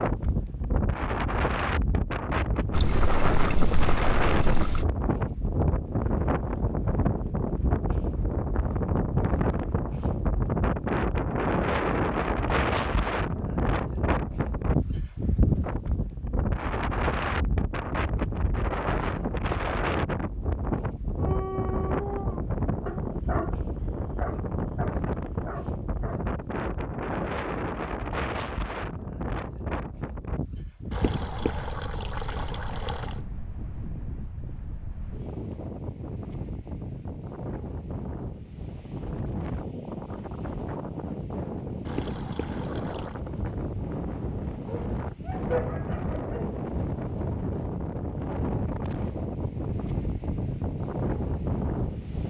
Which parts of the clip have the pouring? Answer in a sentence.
You can hear the pouring from 2.7 to 4.8 s, from 30.9 to 33.1 s and from 41.9 to 43.1 s.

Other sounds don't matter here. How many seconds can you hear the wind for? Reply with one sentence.
The wind can be heard for 52 seconds in total.